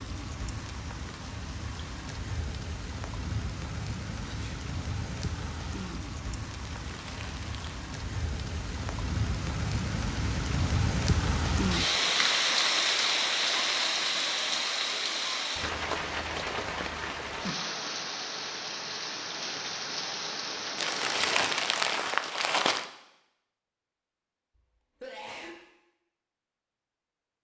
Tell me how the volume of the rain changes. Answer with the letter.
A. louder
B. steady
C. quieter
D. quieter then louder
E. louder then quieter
E.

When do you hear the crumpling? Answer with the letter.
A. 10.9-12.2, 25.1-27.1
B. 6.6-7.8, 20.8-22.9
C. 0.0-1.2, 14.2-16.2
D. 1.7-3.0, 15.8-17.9
B.